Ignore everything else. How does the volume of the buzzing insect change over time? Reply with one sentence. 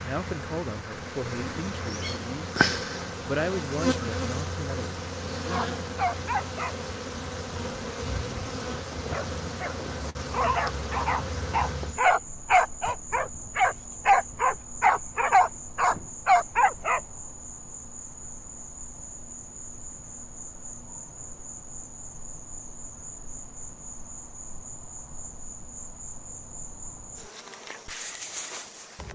The volume of the buzzing insect goes down.